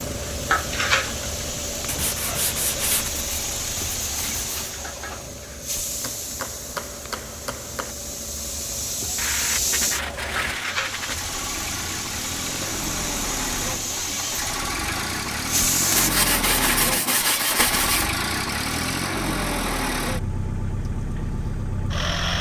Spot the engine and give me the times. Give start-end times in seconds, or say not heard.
0.0-22.3.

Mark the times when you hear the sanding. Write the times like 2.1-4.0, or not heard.
1.9-4.8, 9.2-11.2, 15.9-18.1.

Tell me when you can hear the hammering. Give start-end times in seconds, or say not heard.
6.0-8.0.